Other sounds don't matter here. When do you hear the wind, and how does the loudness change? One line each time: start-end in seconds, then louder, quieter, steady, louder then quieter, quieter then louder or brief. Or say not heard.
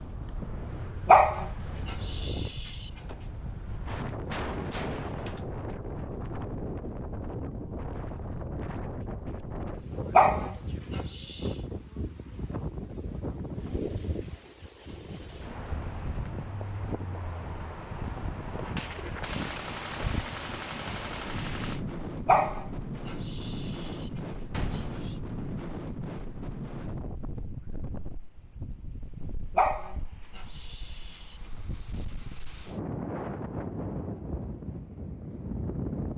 0.0-36.1 steady.